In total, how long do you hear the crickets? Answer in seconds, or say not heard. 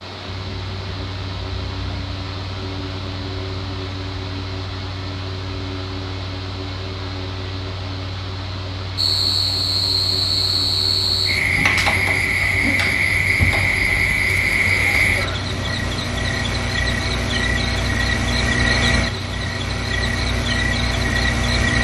13 s.